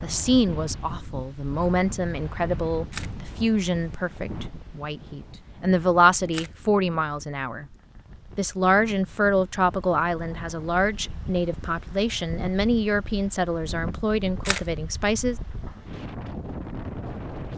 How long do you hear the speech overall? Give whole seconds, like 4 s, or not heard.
15 s.